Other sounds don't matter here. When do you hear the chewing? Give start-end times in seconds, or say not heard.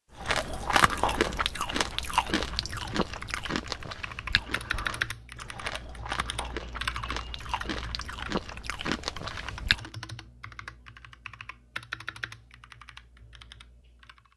0.1-9.9.